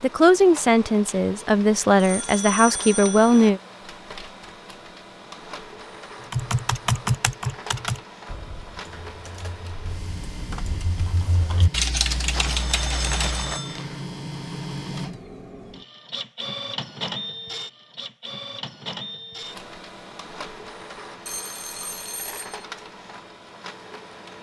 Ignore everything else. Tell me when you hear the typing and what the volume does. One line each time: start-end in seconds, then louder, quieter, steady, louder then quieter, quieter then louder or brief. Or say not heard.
6.3-13.4 quieter then louder.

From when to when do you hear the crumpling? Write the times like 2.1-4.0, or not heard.
12.3-14.1.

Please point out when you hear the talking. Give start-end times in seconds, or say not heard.
0.0-3.6.